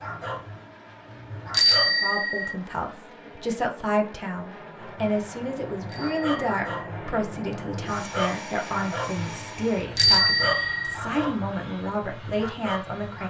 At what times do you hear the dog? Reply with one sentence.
You can hear the dog from 0.0 to 1.9 s and from 4.8 to 13.2 s.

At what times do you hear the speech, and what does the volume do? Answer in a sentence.
The speech can be heard from 1.8 to 13.2 s, at a steady volume.